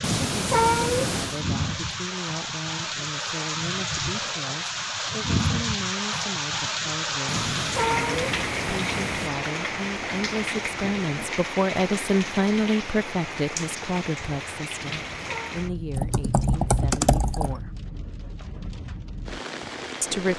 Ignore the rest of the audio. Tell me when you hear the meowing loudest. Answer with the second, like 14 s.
1 s.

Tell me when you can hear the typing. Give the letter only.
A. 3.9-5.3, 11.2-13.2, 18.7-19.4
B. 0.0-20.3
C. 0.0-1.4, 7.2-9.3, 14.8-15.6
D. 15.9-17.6
D.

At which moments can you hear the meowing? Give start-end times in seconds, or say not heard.
0.0-1.4, 7.2-9.3, 14.8-15.6.